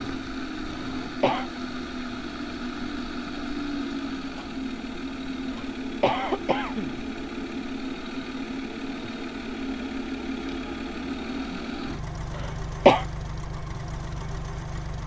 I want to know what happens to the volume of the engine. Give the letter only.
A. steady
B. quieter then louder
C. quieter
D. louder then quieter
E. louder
A.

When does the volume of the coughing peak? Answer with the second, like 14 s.
13 s.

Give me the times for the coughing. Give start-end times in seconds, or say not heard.
0.7-1.5, 5.5-7.0, 12.3-13.1.